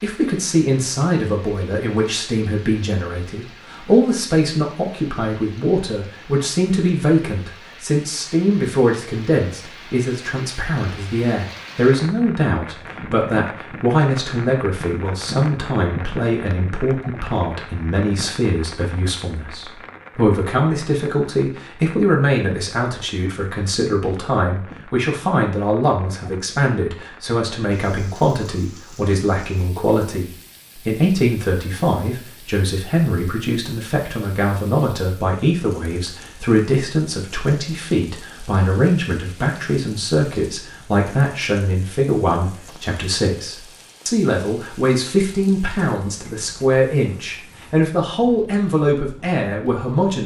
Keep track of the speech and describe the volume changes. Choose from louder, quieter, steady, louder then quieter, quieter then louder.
steady.